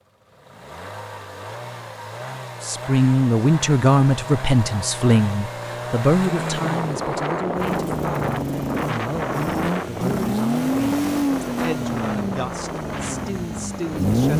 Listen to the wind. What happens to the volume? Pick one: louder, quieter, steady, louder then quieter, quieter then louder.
quieter.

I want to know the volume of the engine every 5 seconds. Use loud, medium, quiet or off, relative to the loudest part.
medium, medium, loud.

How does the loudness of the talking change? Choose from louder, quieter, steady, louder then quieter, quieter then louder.
quieter.